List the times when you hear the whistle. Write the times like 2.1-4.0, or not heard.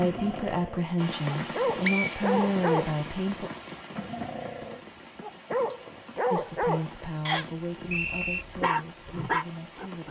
1.3-3.0, 7.2-8.4.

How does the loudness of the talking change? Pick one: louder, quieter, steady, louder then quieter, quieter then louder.
quieter.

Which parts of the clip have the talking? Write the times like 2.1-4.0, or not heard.
0.0-3.5, 6.3-10.0.